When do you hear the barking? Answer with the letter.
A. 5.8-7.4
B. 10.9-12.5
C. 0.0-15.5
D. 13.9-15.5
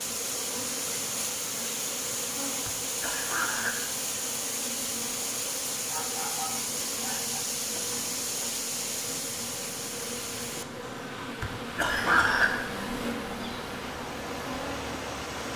A.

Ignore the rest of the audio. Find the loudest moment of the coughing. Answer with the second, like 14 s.
12 s.